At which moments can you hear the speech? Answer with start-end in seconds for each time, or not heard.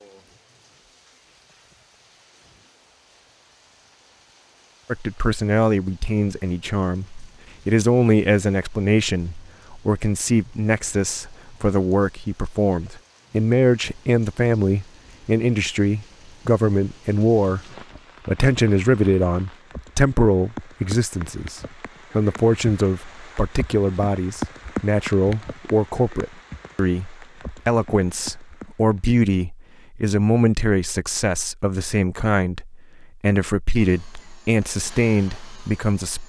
4.8-17.6, 18.2-36.2.